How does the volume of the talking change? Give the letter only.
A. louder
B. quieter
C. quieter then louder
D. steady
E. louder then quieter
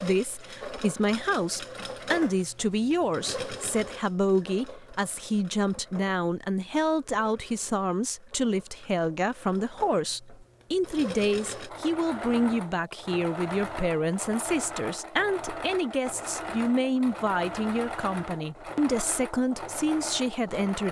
D.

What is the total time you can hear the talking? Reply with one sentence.
The talking can be heard for 21 seconds in total.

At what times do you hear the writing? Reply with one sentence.
You can't hear the writing here.